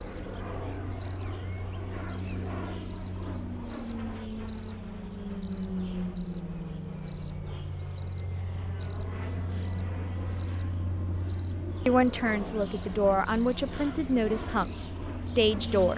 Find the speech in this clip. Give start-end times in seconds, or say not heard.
11.8-15.9.